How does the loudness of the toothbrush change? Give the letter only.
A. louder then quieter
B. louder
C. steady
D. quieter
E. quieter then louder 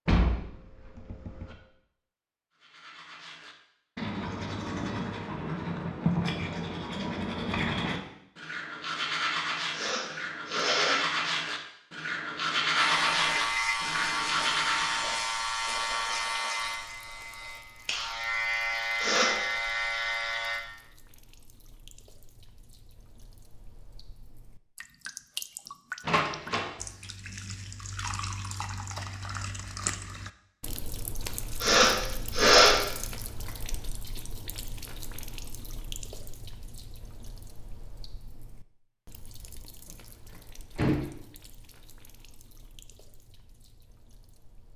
B.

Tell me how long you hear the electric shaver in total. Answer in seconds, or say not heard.
8 s.